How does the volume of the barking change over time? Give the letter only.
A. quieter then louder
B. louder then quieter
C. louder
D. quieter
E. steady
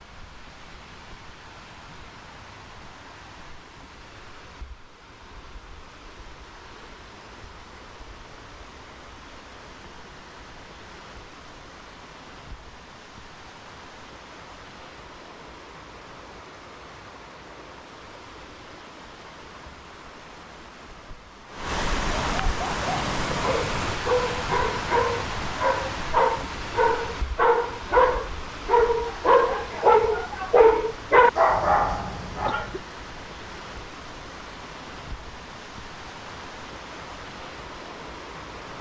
C.